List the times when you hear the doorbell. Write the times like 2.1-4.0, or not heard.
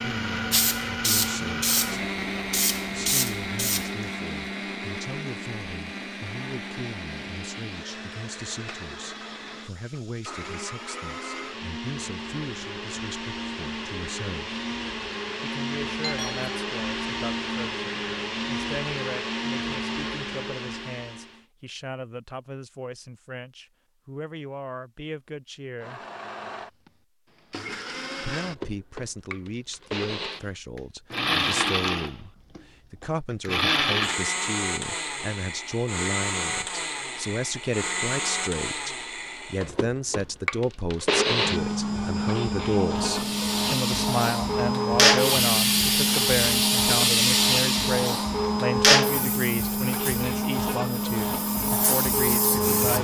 16.0-16.6.